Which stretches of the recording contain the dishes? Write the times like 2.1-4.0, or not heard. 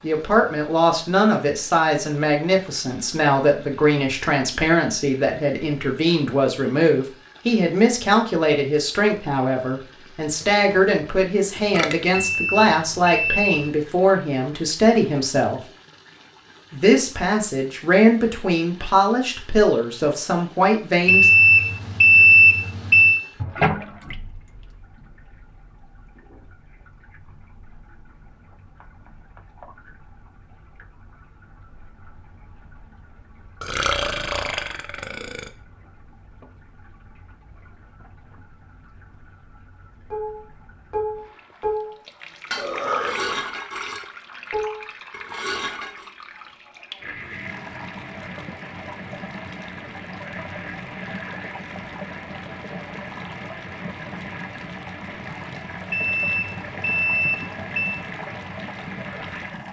40.1-46.1.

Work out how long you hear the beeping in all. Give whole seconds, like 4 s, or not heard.
6 s.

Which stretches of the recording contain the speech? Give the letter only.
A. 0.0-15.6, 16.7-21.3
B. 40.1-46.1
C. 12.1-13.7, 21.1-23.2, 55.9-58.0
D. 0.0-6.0
A.